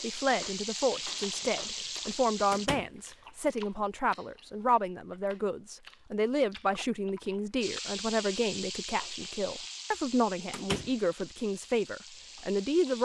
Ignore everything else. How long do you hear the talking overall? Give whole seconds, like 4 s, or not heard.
13 s.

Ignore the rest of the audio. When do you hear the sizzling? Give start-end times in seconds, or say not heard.
0.0-2.7, 7.6-12.9.